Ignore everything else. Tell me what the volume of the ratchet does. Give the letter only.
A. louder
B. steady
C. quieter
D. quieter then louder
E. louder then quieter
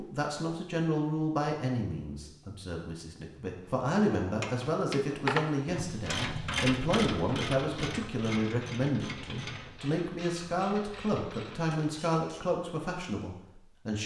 C.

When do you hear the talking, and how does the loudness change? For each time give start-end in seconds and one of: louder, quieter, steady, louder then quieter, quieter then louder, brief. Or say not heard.
0.0-14.0 steady.